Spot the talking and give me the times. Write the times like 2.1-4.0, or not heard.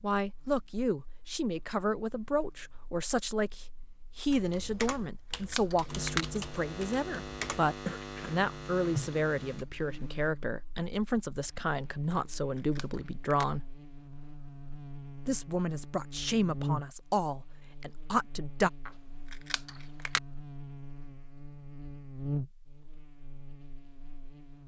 0.0-13.6, 15.2-18.7.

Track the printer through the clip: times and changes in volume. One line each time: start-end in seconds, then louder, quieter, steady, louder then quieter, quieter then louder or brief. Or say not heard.
not heard.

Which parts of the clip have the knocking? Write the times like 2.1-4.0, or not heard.
not heard.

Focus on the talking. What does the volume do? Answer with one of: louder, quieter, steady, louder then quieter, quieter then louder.
steady.